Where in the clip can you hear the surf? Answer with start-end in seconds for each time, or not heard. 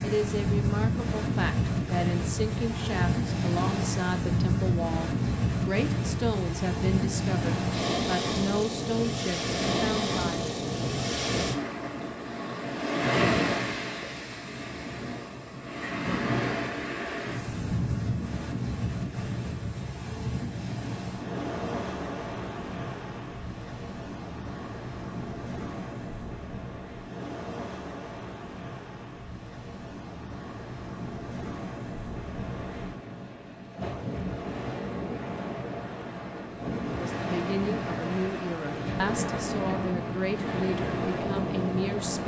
0.0-42.2.